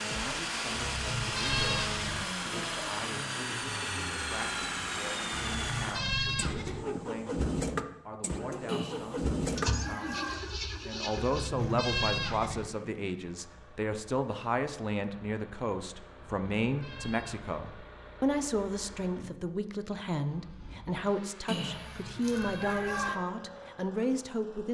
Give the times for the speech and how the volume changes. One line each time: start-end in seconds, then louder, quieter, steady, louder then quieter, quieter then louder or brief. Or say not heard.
0.0-24.6 louder.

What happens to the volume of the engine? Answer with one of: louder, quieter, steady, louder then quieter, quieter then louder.
quieter.